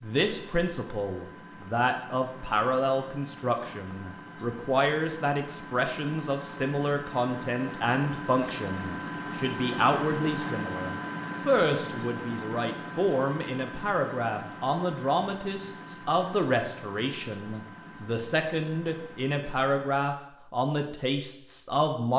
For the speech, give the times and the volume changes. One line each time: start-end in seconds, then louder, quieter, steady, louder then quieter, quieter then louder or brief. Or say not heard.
0.0-22.1 steady.